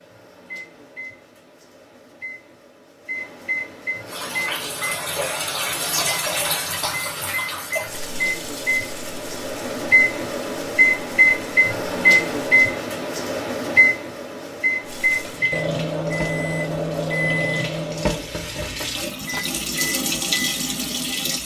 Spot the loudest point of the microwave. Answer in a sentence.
The volume of the microwave peaks at 12 seconds.